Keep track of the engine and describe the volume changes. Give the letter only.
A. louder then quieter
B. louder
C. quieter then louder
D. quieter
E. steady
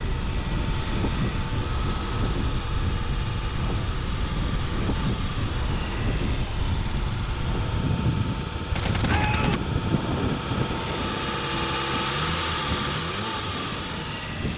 B.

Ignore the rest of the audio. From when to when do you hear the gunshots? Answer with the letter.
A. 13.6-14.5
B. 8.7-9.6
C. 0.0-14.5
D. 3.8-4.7
B.